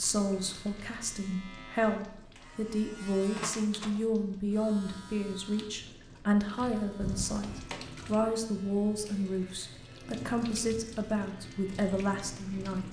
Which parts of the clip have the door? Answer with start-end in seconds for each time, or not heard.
3.3-4.0, 7.0-7.5.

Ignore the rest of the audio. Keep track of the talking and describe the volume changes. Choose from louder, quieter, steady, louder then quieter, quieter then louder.
steady.